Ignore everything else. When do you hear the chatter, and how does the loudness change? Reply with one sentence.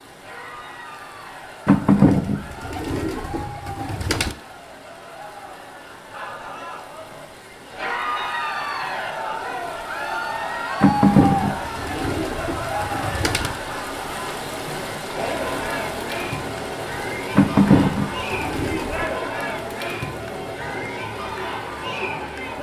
The chatter can be heard from 0.1 to 22.5 s, getting louder.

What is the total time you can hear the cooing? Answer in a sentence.
The cooing can be heard for 7 seconds in total.